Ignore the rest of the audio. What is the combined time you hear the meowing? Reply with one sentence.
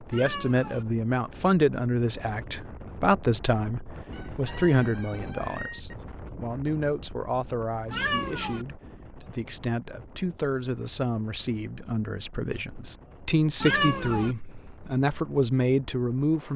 The meowing can be heard for 2 seconds in total.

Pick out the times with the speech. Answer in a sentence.
You can hear the speech from 0.0 to 16.5 s.